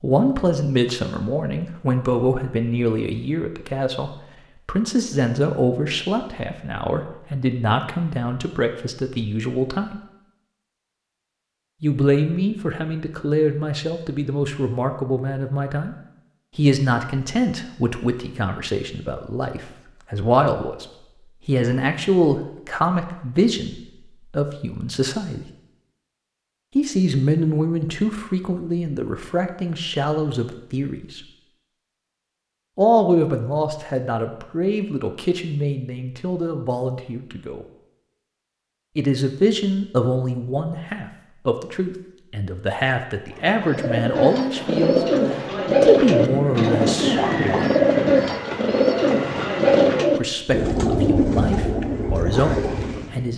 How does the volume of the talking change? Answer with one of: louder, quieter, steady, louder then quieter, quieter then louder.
steady.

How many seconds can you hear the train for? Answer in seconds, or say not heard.
4 s.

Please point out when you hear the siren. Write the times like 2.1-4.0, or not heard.
not heard.